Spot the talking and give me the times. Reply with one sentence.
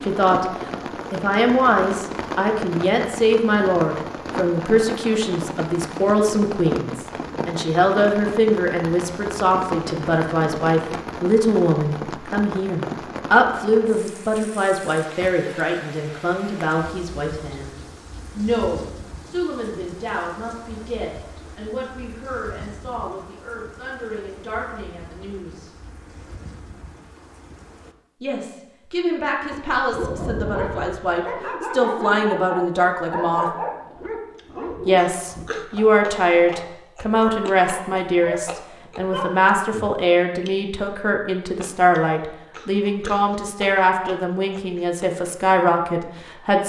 You can hear the talking from 0.0 to 0.5 s, from 1.1 to 17.8 s, from 18.4 to 25.7 s, from 28.2 to 33.5 s and from 34.9 to 46.6 s.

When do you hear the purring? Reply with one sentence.
You can't hear the purring here.